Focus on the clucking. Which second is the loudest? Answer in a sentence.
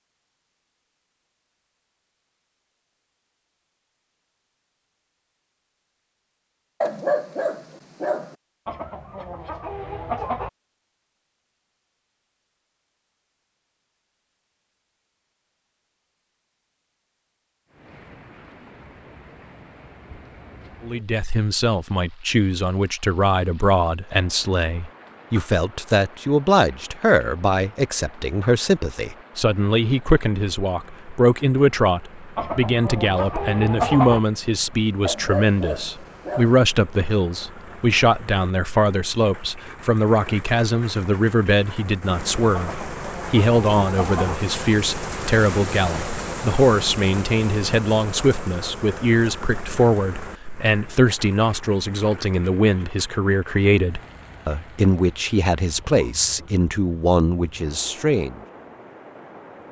The loudest moment of the clucking is at 34 seconds.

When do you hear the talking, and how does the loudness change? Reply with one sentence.
The talking can be heard from 20.8 to 58.4 s, at a steady volume.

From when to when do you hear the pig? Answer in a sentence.
The pig can't be heard in this clip.